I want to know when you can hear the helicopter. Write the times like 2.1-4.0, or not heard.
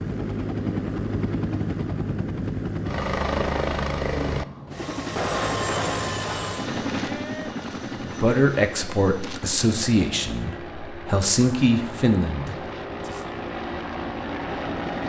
0.0-15.0.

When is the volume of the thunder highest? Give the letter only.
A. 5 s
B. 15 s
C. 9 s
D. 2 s
A.